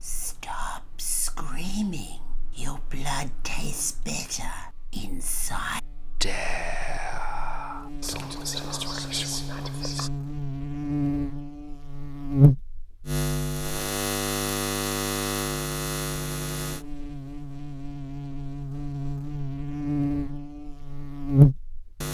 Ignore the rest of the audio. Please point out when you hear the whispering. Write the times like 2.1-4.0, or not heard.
0.0-10.1.